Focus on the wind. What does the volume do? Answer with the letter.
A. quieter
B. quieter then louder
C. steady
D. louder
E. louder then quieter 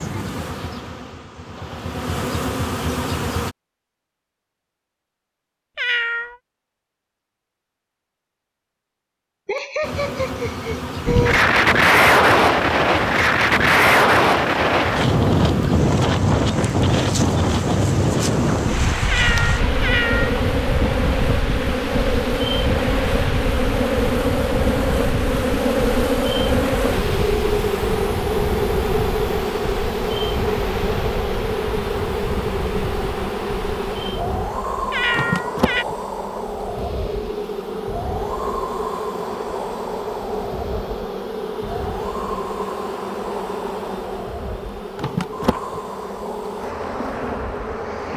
A.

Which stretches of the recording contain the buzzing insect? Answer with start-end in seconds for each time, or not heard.
0.0-3.5, 9.8-48.1.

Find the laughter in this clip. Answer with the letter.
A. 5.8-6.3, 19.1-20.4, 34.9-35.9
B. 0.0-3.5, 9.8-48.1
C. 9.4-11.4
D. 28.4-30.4
C.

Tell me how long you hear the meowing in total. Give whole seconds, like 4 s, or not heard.
3 s.